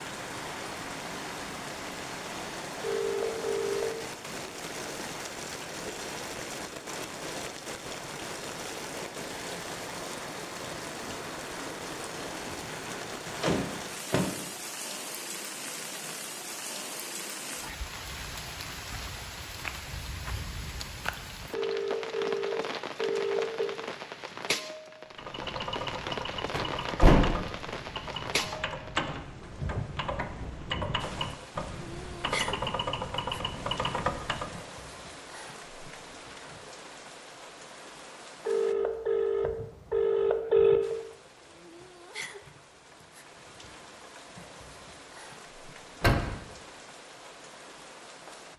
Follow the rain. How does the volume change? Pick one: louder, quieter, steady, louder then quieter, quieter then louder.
quieter.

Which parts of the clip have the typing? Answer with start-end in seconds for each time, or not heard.
25.1-34.6.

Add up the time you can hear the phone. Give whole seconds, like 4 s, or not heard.
6 s.